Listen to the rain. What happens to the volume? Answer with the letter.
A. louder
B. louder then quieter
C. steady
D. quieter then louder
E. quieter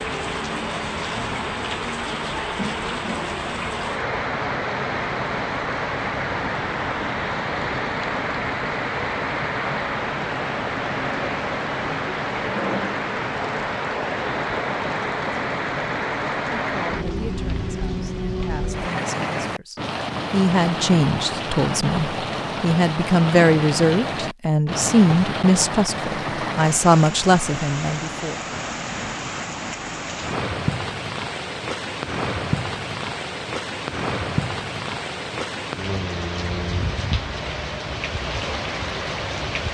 C.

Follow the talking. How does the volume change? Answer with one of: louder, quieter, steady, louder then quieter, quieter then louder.
louder.